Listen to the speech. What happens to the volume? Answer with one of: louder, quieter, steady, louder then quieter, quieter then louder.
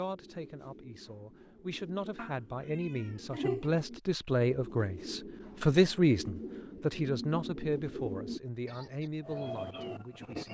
louder then quieter.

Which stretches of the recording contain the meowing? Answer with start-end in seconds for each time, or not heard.
2.1-3.7.